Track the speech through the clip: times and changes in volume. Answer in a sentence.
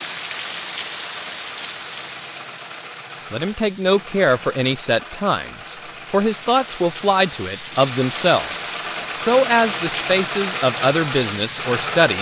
You can hear the speech from 3.3 to 12.1 s, at a steady volume.